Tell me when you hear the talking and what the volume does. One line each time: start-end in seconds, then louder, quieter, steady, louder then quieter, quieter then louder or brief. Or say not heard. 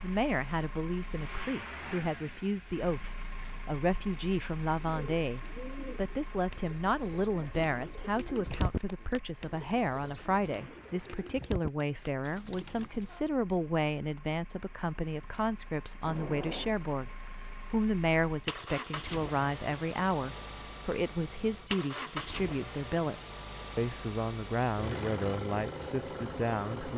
0.0-26.9 steady.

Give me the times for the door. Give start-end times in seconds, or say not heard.
16.1-16.8.